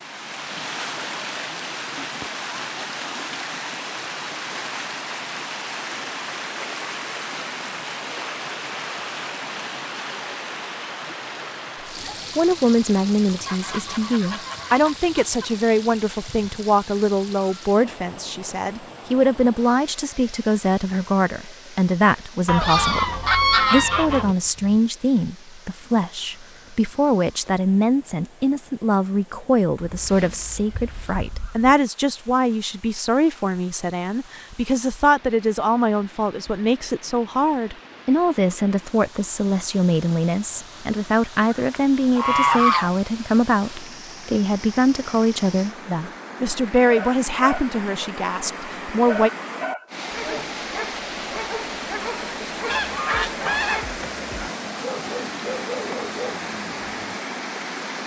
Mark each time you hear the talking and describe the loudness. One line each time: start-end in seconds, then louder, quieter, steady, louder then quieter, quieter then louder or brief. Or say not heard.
12.3-49.3 steady.